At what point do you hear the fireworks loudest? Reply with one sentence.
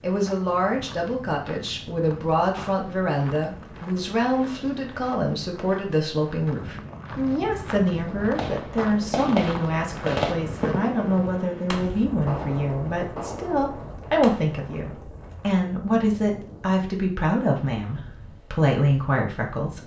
The volume of the fireworks peaks at 10 seconds.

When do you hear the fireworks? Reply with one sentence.
You can hear the fireworks from 8.1 to 14.6 s.